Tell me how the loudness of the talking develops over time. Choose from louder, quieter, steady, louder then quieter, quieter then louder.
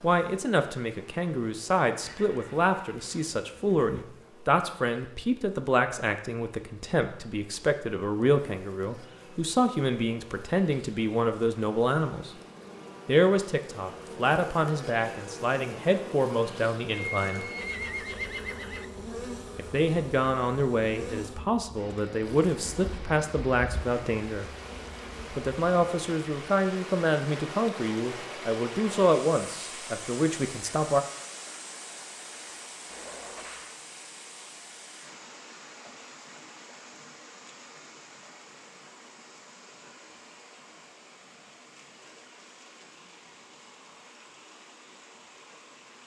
steady.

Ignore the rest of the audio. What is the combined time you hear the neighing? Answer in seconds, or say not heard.
5 s.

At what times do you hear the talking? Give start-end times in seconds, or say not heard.
0.0-12.3, 13.1-17.4, 19.6-24.5, 25.3-31.1.